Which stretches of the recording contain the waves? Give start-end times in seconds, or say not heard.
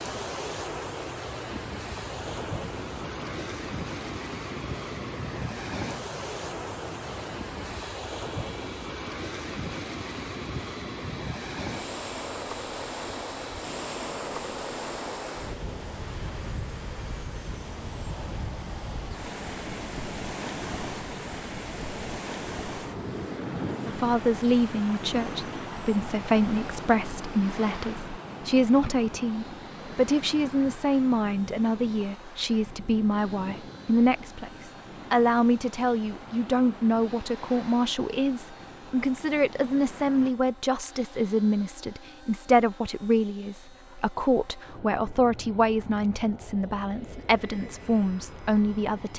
0.0-40.4.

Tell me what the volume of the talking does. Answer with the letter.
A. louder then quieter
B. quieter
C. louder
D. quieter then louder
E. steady
E.